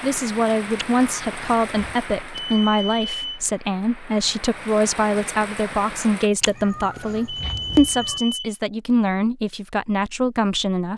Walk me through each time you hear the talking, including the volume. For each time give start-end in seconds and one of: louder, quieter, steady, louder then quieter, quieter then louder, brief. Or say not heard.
0.0-10.9 steady.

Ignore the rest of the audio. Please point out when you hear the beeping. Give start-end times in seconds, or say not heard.
2.4-3.2, 7.2-8.6.